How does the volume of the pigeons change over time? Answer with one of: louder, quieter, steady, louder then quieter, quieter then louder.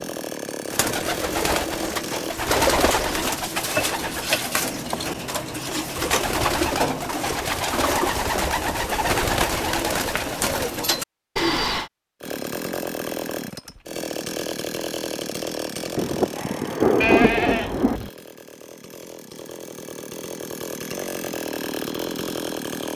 steady.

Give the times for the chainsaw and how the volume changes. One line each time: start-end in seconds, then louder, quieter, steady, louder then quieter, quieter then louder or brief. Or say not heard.
0.0-2.4 brief
12.2-22.9 quieter then louder.